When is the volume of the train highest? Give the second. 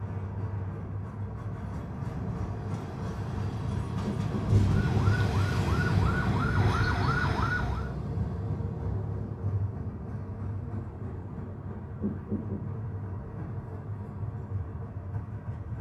5 s.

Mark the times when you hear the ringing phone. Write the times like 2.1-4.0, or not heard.
4.0-5.0, 11.9-12.6.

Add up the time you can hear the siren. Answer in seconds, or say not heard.
3 s.